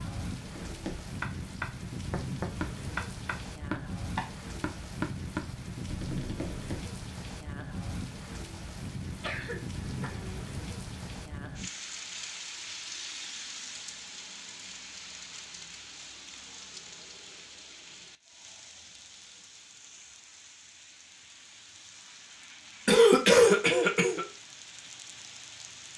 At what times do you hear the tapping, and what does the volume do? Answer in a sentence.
The tapping can be heard from 0.5 to 7.0 s, getting quieter.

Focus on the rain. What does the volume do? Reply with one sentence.
The volume of the rain goes down.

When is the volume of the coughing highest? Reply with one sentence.
The loudest moment of the coughing is at 23 seconds.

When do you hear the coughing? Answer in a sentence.
The coughing can be heard from 9.2 to 10.4 s and from 22.9 to 24.2 s.